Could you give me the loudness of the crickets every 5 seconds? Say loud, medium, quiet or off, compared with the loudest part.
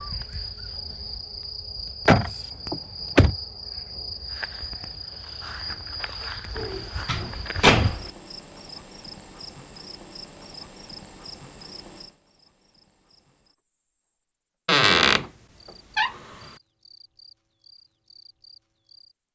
loud, loud, medium, quiet.